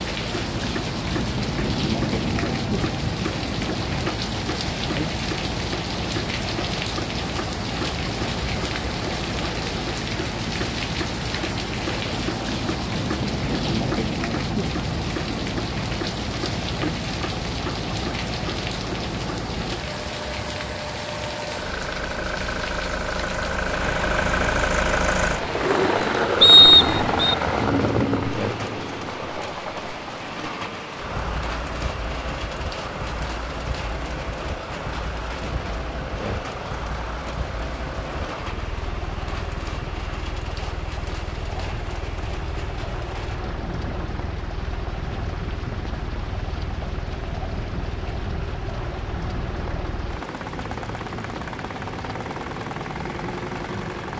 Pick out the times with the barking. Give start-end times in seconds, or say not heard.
not heard.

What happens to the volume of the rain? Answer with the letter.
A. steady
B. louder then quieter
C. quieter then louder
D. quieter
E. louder
D.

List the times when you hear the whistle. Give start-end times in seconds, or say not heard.
26.4-27.4.